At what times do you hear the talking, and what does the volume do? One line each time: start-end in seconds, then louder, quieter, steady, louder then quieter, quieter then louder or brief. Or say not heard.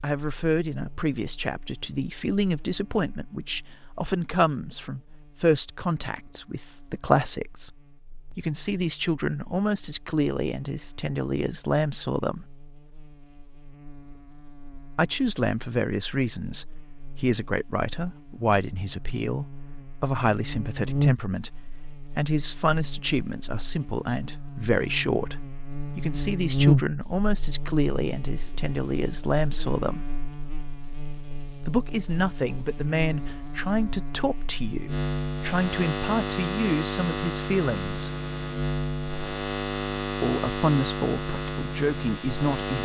0.0-12.4 steady
14.9-30.1 steady
31.6-38.1 quieter then louder
40.2-42.8 brief.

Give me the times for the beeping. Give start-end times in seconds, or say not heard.
not heard.